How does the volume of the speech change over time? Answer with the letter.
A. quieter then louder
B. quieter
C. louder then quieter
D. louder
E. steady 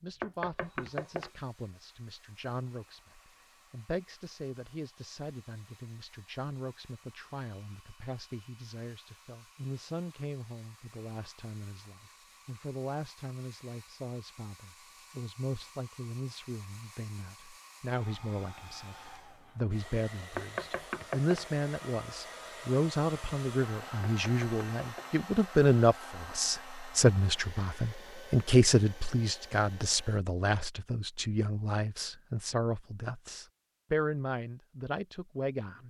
D.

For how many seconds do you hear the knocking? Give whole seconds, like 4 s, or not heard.
3 s.